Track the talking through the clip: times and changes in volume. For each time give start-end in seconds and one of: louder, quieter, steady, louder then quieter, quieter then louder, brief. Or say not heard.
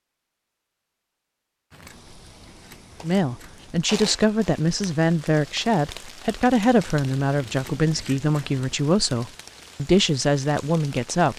3.0-11.3 steady.